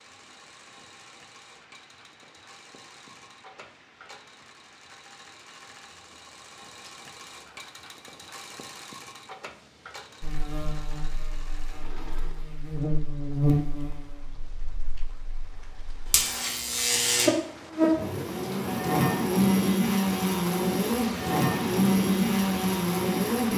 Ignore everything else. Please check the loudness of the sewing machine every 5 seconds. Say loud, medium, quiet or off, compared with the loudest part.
medium, loud, loud, off, off.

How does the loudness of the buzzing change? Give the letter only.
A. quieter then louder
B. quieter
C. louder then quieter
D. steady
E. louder
E.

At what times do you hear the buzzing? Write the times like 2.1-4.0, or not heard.
10.2-23.5.